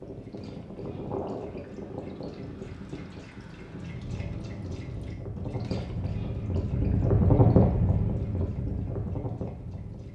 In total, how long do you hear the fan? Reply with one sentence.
You can hear the fan for 10 seconds altogether.